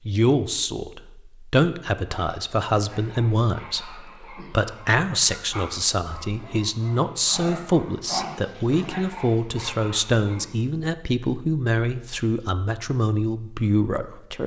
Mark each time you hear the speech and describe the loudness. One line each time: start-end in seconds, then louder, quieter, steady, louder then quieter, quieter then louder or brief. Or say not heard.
0.1-14.4 steady.